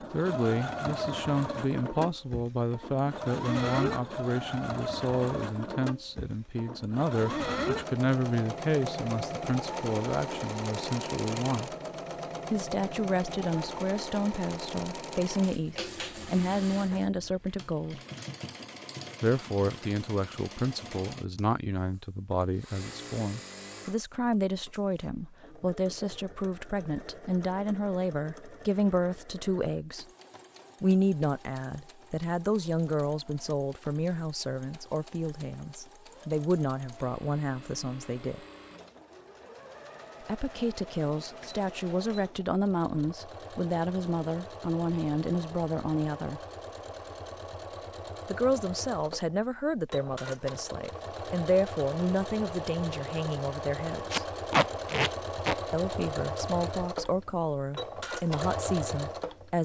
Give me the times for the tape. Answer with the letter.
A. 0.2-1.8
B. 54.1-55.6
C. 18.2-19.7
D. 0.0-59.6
B.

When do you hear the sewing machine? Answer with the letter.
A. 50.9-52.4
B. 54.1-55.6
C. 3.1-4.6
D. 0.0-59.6
D.